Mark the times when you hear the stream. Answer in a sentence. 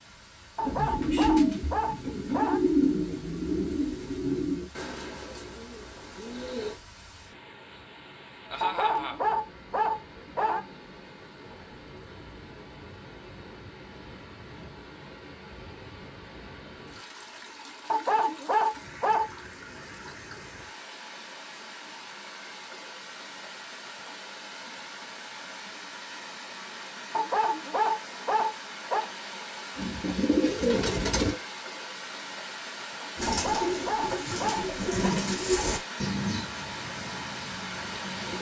The stream can be heard from 0.0 to 38.3 s.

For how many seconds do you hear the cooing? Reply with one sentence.
The cooing can be heard for 13 seconds in total.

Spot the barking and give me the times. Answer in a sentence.
You can hear the barking from 0.6 to 2.6 s, from 8.6 to 10.6 s, from 17.9 to 19.2 s, from 27.1 to 29.1 s and from 33.2 to 35.1 s.